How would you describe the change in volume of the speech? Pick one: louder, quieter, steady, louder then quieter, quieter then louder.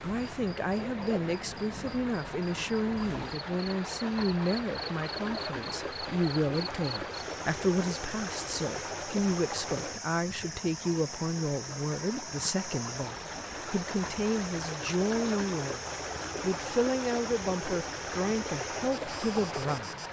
steady.